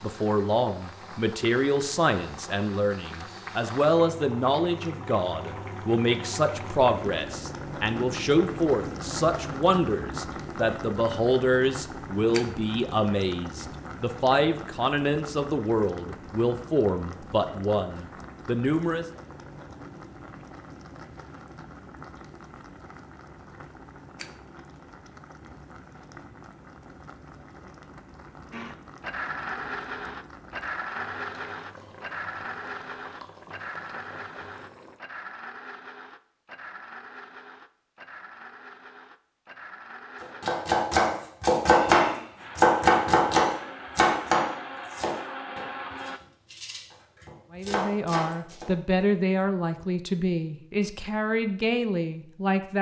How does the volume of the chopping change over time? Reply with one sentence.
The loudness of the chopping goes down, then up.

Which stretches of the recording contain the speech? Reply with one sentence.
The speech can be heard from 0.0 to 19.1 s and from 47.5 to 52.7 s.